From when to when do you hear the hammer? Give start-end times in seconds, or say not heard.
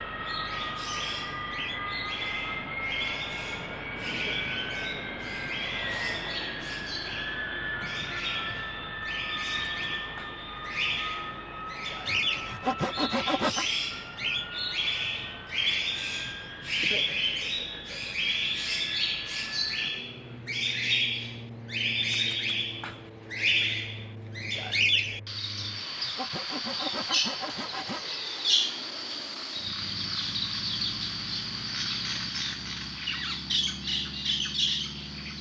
not heard.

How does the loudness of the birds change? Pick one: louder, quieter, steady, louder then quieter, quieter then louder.
louder.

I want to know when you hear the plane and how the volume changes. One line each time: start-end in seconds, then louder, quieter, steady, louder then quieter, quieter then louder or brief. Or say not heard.
0.0-35.3 quieter.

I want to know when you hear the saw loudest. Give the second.
13 s.